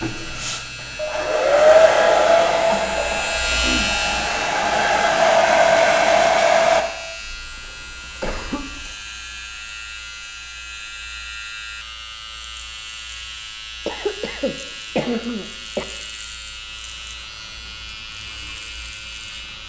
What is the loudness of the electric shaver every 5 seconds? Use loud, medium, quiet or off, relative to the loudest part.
loud, medium, medium, medium.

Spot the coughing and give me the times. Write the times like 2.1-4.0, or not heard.
2.5-4.0, 7.2-8.9, 13.8-15.8.